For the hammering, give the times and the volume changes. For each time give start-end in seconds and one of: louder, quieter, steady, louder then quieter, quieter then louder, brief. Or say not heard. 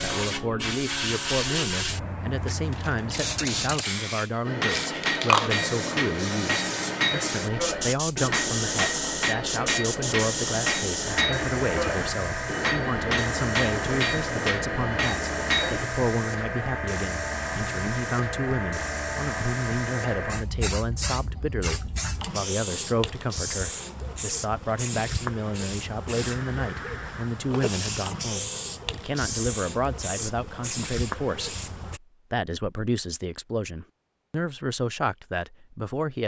4.5-15.9 steady.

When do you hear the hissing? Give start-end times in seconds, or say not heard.
0.0-32.0.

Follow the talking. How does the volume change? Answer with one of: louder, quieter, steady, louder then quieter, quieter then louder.
steady.